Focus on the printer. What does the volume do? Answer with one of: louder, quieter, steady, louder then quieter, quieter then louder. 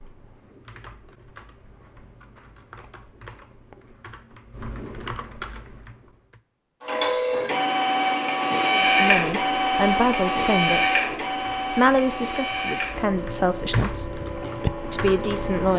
quieter.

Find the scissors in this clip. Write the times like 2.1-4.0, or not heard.
2.7-3.4.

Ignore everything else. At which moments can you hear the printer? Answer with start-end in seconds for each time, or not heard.
6.8-15.7.